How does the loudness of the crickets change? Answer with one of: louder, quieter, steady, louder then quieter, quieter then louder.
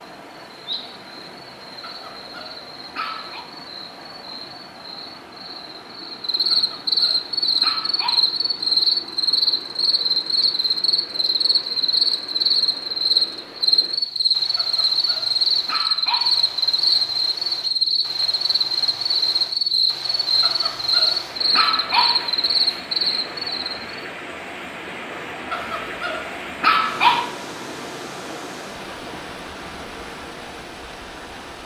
louder.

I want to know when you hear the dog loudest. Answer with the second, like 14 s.
27 s.